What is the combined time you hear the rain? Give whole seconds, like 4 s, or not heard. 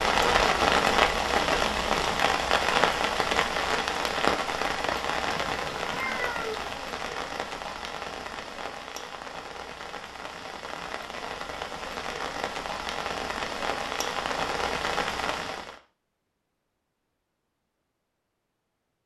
16 s.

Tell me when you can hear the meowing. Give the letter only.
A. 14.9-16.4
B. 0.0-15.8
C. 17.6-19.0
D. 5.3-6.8
D.